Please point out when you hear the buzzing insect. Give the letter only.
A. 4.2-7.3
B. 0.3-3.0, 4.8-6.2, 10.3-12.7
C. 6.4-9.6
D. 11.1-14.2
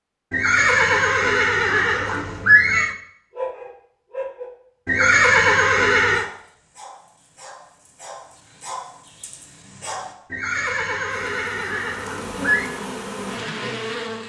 D.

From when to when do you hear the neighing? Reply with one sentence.
You can hear the neighing from 0.3 to 3.0 s, from 4.8 to 6.2 s and from 10.3 to 12.7 s.